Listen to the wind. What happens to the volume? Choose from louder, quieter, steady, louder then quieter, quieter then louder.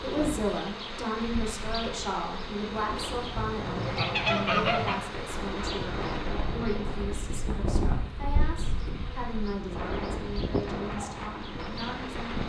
louder.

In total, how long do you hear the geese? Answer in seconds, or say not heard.
2 s.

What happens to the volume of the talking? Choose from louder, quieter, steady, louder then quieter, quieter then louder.
quieter.